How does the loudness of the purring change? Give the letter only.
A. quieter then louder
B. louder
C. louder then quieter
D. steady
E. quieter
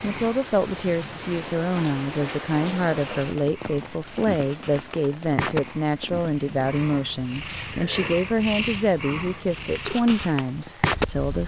B.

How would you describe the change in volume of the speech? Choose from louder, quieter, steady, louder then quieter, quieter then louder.
steady.